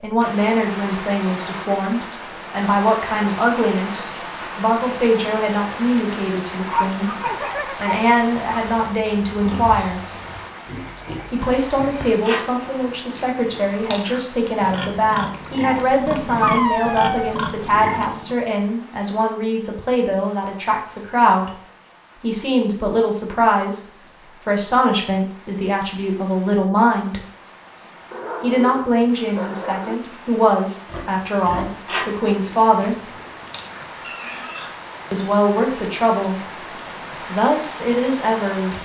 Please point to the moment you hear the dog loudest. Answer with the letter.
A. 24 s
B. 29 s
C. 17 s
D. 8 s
C.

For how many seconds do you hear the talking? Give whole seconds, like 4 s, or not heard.
33 s.